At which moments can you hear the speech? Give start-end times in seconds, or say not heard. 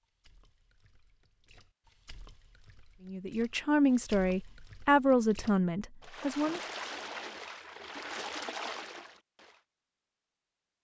3.0-6.6.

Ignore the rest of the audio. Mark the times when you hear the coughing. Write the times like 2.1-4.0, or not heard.
not heard.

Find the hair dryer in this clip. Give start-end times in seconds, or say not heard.
not heard.